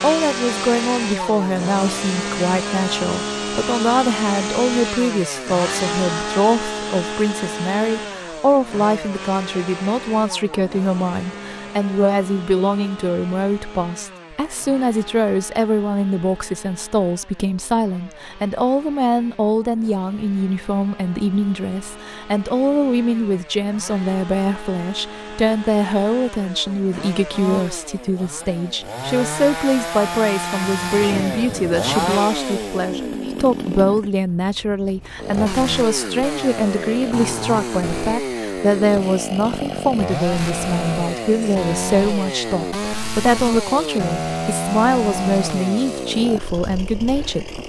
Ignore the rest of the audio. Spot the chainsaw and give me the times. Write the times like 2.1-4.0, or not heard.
0.0-47.6.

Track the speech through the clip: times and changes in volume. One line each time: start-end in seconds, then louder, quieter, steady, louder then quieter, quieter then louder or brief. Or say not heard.
0.0-47.6 steady.